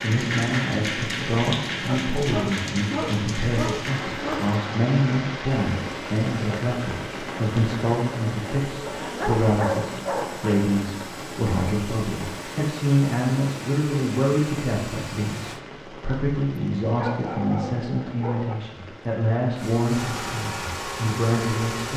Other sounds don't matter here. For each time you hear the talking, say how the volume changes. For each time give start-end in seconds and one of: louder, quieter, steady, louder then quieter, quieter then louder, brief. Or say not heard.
0.0-21.9 steady.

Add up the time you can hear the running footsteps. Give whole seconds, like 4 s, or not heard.
not heard.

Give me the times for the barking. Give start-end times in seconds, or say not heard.
1.9-4.6, 8.8-10.7, 16.9-18.6.